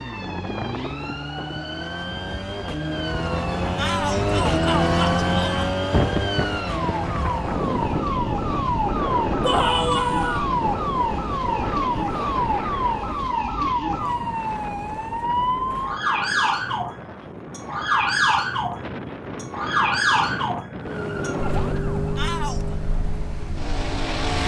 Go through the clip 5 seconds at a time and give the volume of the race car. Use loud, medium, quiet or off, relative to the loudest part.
loud, loud, medium, off, loud.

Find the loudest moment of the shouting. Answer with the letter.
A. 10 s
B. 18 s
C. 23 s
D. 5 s
A.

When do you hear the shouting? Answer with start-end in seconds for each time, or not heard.
3.8-5.8, 9.4-10.4, 22.1-22.8.